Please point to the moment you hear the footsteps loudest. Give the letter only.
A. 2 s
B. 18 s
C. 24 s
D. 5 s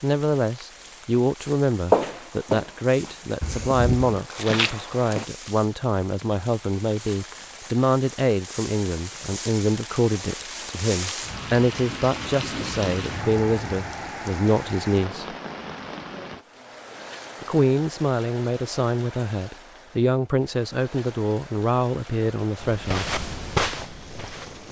A.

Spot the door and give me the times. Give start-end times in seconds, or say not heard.
3.4-4.2.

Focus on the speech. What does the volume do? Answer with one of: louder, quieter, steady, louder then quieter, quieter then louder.
steady.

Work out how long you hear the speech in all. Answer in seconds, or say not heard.
21 s.